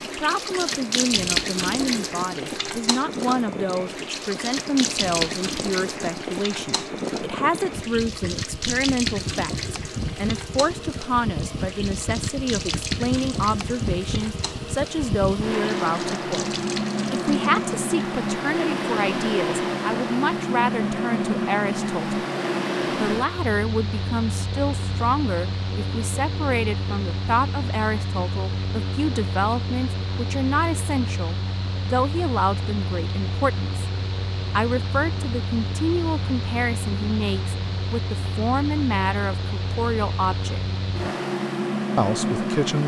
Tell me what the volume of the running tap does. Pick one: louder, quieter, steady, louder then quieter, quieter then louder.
quieter.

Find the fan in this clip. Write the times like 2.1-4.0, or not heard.
0.0-42.8.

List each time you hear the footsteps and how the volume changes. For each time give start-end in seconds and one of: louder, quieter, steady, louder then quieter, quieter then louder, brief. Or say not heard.
not heard.